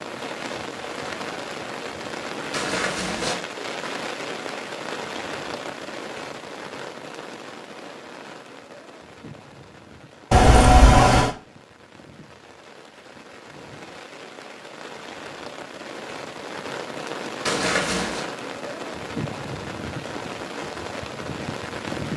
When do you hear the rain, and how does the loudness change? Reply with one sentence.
You can hear the rain from 0.0 to 22.1 s, getting quieter then louder.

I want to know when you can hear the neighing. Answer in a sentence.
The neighing can be heard from 2.5 to 3.4 s, from 10.3 to 11.3 s and from 17.4 to 18.2 s.